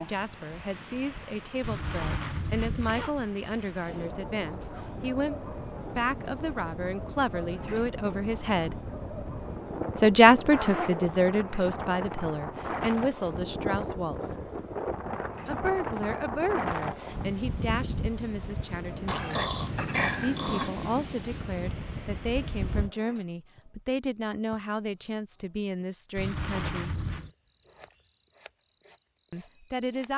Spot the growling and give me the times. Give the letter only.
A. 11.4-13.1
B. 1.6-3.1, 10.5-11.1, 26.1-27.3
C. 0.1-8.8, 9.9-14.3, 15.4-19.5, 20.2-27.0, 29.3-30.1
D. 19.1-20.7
D.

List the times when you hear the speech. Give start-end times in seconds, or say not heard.
0.1-8.8, 9.9-14.3, 15.4-19.5, 20.2-27.0, 29.3-30.1.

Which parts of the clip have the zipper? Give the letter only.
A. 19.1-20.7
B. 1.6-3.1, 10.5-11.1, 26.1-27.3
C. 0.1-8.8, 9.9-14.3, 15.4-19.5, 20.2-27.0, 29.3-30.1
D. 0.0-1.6
B.